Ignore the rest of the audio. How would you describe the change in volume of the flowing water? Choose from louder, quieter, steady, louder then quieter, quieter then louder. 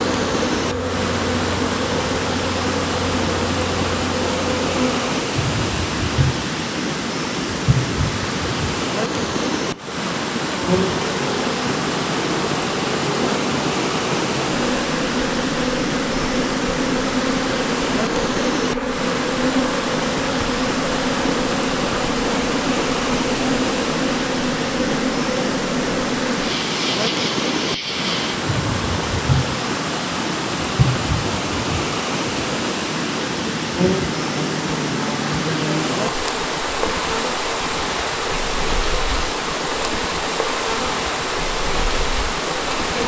steady.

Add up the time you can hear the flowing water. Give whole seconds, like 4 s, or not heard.
43 s.